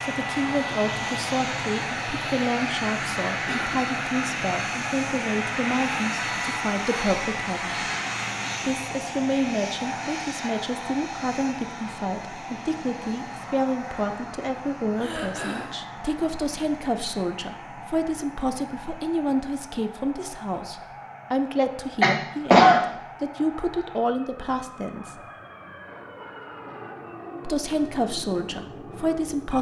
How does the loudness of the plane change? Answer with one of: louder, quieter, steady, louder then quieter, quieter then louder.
quieter.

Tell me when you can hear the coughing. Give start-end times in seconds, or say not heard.
3.5-4.0, 14.9-15.7, 22.0-22.8.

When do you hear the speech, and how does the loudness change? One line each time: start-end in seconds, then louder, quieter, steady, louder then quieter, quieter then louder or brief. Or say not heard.
0.0-7.9 steady
8.6-25.2 steady
27.4-29.5 brief.